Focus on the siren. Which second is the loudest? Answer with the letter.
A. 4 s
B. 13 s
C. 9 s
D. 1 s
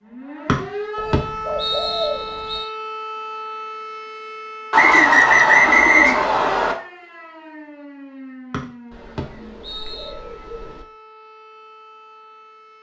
D.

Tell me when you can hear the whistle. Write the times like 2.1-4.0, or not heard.
0.5-2.6, 4.7-6.8, 8.5-10.1.